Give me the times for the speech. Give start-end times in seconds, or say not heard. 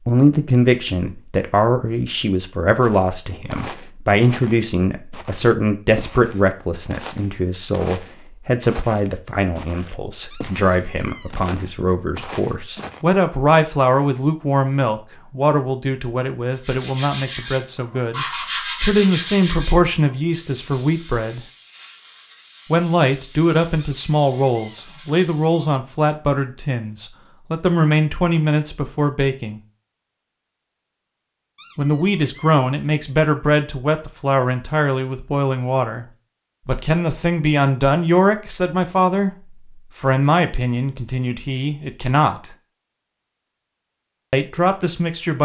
0.1-21.4, 22.7-29.6, 31.8-36.0, 36.6-42.5, 44.3-45.4.